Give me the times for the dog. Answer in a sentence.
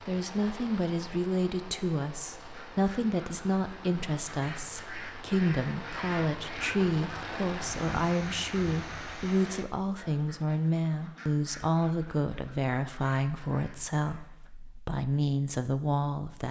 You can't hear the dog here.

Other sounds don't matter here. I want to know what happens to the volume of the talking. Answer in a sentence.
The volume of the talking stays about the same.